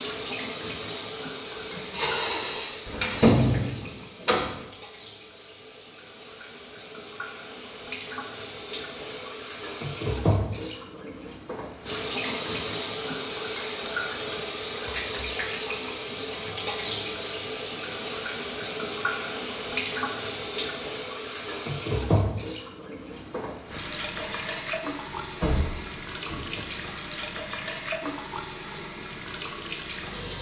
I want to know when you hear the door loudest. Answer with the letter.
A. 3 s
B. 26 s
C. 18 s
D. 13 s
A.